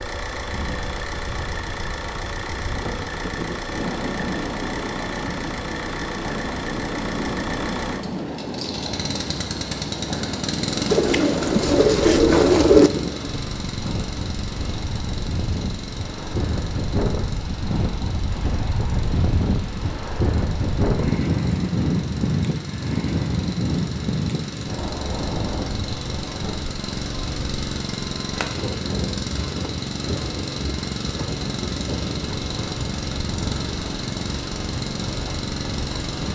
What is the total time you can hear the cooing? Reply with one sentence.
You can hear the cooing for 2 seconds altogether.